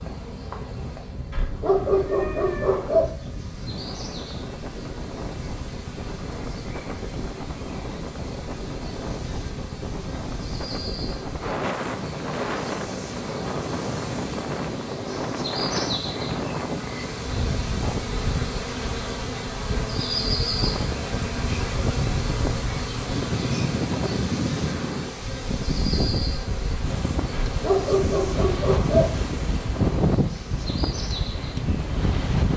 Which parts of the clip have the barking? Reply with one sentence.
You can hear the barking from 1.3 to 3.1 s and from 27.4 to 29.1 s.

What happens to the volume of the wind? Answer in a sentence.
The loudness of the wind goes up.